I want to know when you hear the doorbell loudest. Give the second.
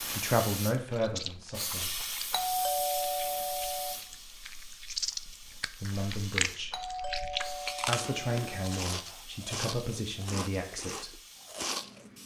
3 s.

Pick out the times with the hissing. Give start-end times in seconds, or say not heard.
0.0-12.2.